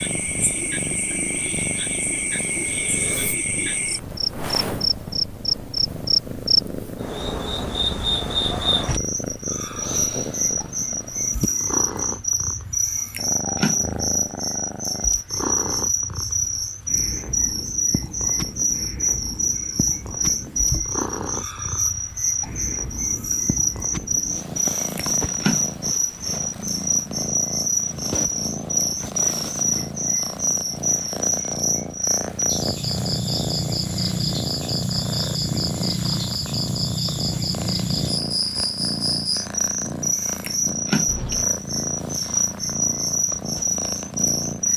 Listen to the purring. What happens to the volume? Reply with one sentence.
The volume of the purring stays about the same.